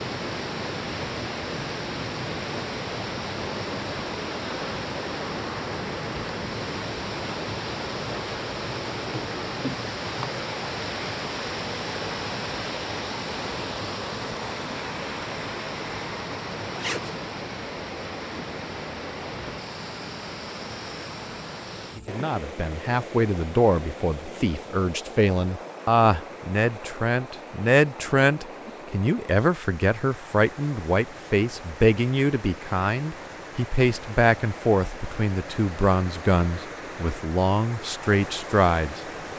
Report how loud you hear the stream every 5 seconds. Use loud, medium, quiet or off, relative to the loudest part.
loud, loud, loud, loud, medium, medium, medium, medium.